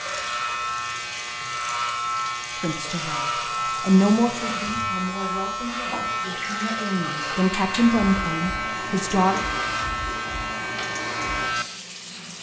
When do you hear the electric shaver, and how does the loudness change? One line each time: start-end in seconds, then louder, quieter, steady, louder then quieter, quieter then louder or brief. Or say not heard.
0.0-12.3 steady.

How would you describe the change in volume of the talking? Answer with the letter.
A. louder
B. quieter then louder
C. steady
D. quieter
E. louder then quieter
B.